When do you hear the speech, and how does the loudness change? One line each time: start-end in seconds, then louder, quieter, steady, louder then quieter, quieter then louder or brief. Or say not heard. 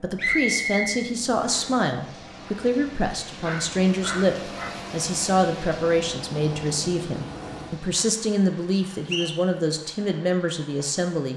0.0-11.3 steady.